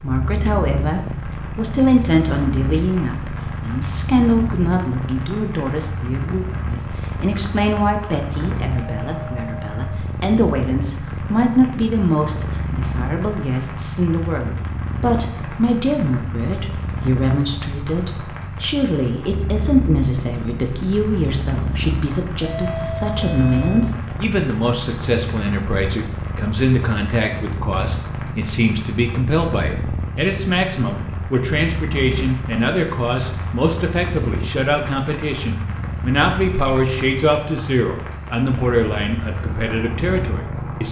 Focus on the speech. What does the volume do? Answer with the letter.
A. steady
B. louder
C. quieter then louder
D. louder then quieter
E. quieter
A.